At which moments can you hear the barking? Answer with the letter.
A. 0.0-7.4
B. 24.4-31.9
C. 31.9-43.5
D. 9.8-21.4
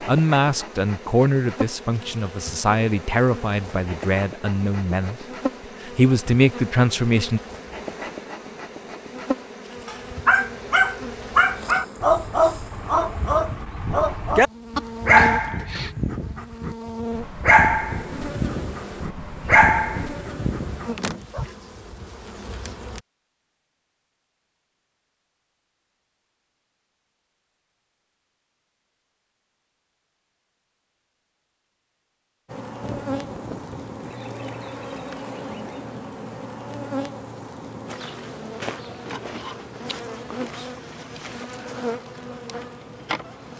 D.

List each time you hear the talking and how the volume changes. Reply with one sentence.
The talking can be heard from 0.0 to 7.4 s, getting quieter then louder.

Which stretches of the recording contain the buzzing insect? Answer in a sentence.
The buzzing insect can be heard from 0.0 to 23.0 s and from 32.5 to 43.5 s.